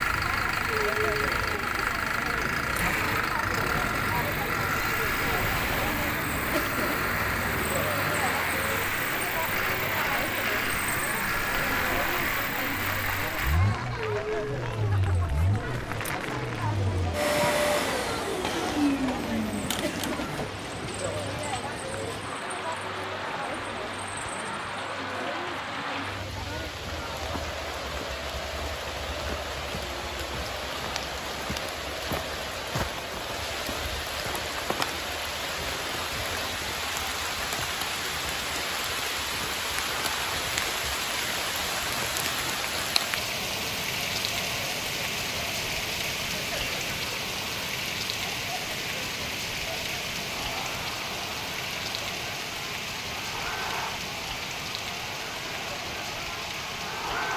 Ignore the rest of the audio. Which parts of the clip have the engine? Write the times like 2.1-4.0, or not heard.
0.0-20.6.